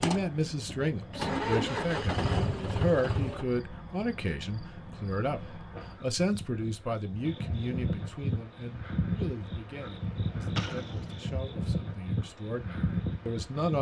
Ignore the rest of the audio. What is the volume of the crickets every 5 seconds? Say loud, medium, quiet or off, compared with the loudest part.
medium, loud, loud.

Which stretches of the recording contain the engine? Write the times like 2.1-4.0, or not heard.
0.0-3.6.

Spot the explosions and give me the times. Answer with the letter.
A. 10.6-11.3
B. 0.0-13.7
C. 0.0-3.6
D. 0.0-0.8
A.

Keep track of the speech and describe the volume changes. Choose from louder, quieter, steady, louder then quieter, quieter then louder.
quieter.